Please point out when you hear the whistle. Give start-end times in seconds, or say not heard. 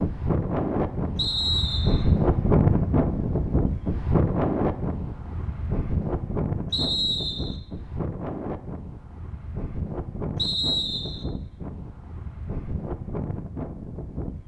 1.1-2.0, 6.7-7.6, 10.3-11.2.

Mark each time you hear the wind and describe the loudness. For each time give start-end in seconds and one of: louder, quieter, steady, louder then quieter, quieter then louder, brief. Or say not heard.
0.0-14.4 quieter.